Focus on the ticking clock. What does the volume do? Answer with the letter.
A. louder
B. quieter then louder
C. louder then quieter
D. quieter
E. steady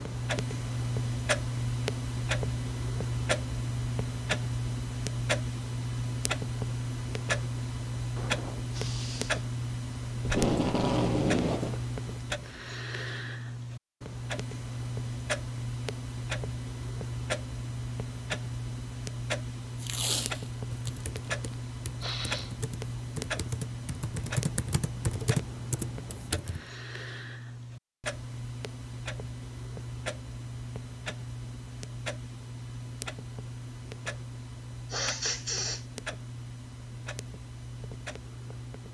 D.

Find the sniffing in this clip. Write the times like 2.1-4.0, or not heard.
8.2-9.4, 22.0-22.6, 34.9-35.9.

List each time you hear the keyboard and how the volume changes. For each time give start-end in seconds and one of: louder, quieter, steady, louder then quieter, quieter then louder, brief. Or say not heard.
20.7-26.6 louder.